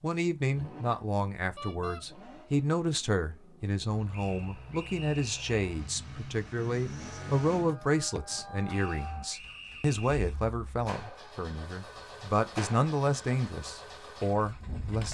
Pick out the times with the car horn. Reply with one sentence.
The car horn can be heard from 1.6 to 2.0 s.